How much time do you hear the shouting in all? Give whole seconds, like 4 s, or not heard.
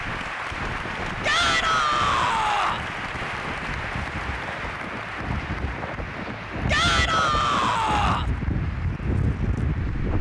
3 s.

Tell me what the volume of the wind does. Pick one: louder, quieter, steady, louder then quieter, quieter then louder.
louder.